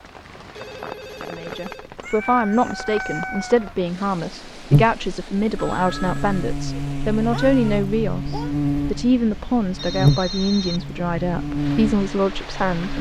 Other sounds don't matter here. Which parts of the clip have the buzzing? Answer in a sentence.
The buzzing can be heard from 4.7 to 12.9 s.